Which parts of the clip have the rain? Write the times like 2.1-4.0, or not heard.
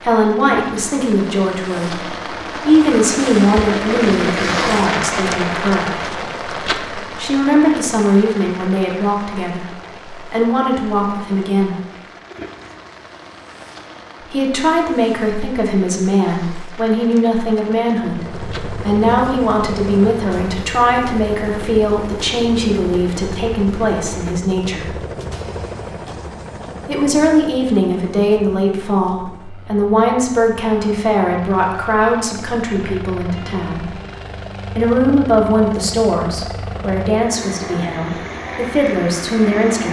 0.0-24.4.